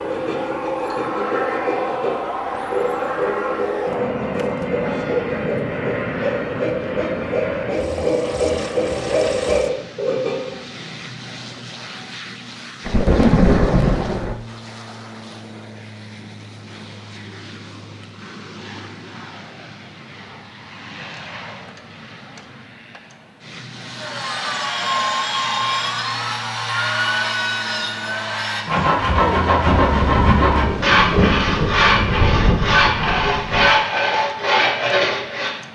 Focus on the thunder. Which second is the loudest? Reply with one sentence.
The loudest moment of the thunder is at 13 seconds.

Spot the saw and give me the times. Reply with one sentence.
You can hear the saw from 0.0 to 10.6 s and from 23.8 to 35.5 s.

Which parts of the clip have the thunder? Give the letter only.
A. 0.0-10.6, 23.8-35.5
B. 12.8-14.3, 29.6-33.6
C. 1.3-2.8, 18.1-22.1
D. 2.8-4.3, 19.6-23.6
B.